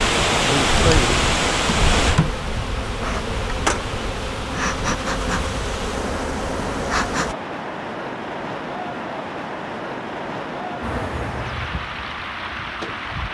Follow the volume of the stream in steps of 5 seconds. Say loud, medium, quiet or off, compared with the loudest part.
loud, medium, medium.